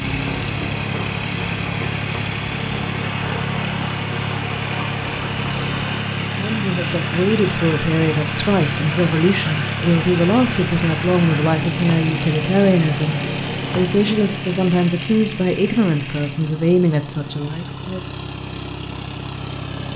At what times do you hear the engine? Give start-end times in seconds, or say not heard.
0.0-19.9.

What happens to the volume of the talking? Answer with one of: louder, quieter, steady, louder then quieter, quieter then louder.
steady.